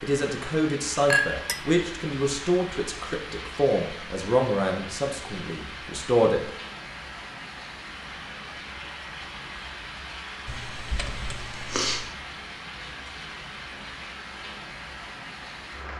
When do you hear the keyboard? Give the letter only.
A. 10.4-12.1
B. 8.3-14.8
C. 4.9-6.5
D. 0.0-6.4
A.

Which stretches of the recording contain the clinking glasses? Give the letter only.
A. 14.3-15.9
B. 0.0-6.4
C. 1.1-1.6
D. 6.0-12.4
C.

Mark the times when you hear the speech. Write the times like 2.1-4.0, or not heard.
0.0-6.4.